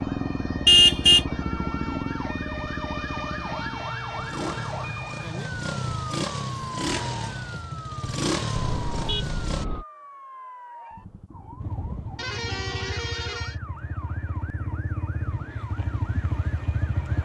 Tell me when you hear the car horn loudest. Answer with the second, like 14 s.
1 s.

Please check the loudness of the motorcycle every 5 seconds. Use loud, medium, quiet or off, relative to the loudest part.
loud, loud, medium, loud.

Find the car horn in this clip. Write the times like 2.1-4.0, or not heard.
0.7-1.2, 8.5-9.8, 12.2-13.6.